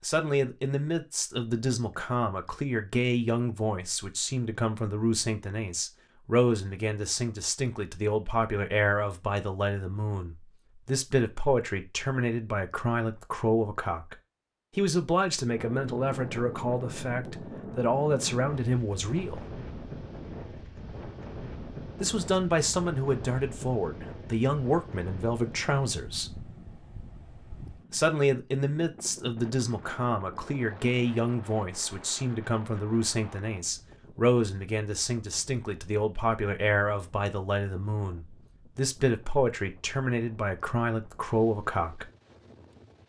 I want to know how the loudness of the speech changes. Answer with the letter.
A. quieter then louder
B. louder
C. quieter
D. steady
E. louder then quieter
D.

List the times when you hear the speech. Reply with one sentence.
The speech can be heard from 0.0 to 14.2 s, from 14.8 to 19.4 s, from 22.0 to 26.4 s and from 27.9 to 42.0 s.